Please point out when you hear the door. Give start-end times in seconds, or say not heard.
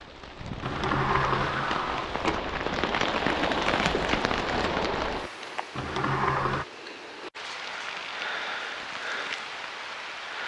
0.6-2.5, 5.8-6.7.